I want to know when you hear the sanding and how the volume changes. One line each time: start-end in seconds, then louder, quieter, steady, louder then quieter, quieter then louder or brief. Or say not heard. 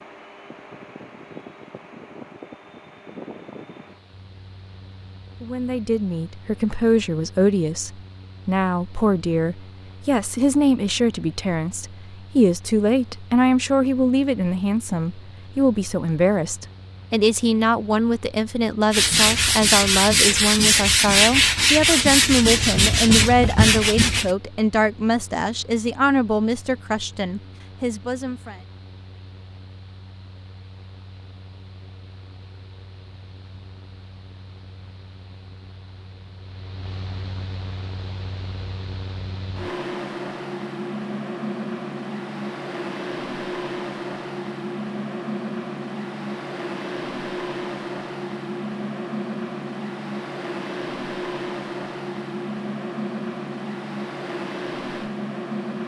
18.9-24.4 steady.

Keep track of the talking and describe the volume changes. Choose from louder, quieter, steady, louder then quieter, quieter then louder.
steady.